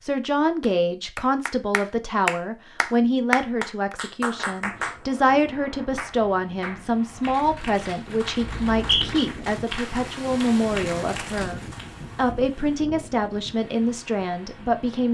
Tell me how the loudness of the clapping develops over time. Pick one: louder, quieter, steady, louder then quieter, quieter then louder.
quieter.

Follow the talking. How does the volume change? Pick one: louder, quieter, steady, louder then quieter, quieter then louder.
steady.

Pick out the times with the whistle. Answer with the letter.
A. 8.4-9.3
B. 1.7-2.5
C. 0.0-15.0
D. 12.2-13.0
A.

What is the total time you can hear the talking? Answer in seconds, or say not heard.
15 s.